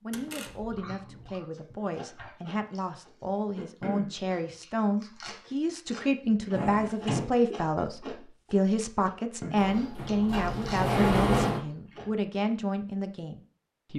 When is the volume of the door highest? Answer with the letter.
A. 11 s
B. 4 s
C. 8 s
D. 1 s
A.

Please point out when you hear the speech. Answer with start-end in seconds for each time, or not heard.
0.0-13.9.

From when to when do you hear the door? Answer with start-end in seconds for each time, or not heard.
0.1-0.8, 6.5-7.3, 9.6-11.6.